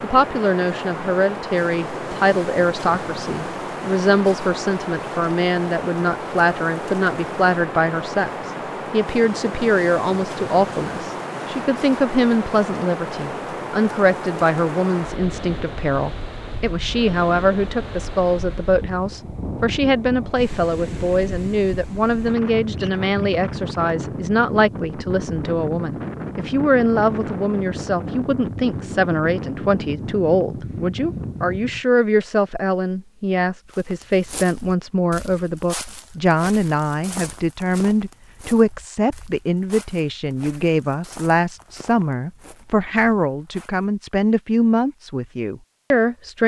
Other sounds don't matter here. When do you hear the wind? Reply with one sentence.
You can hear the wind from 0.0 to 31.9 s.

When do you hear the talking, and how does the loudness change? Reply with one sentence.
You can hear the talking from 0.0 to 46.4 s, at a steady volume.